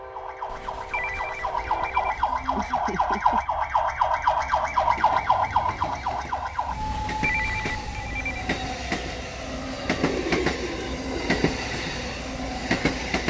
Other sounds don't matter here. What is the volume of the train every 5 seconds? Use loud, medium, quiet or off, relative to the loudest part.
quiet, medium, loud.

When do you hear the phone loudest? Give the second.
7 s.